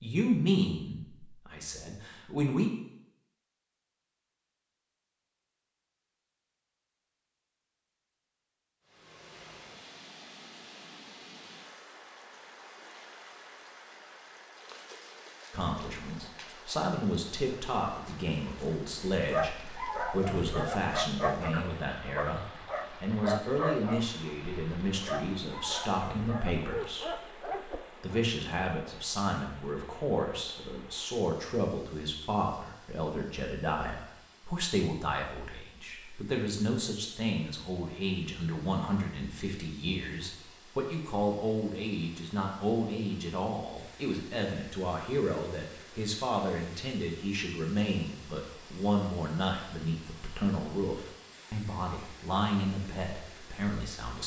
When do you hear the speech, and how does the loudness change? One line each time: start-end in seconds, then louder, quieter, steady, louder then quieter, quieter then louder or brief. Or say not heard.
0.0-2.7 brief
15.5-22.4 steady
23.0-54.2 steady.